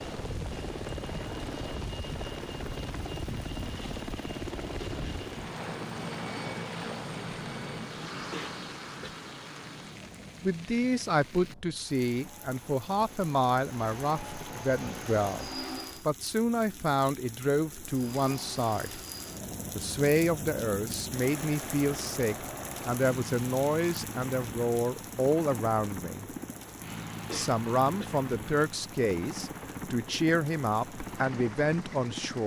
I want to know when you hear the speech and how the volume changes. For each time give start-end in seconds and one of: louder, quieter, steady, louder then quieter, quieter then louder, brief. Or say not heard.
10.4-19.0 steady
19.7-26.3 steady
27.3-32.4 steady.